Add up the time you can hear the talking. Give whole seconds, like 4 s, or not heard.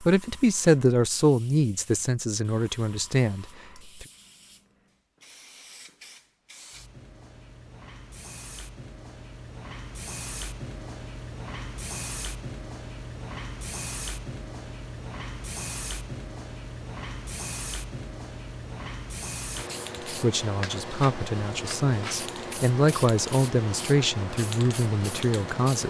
10 s.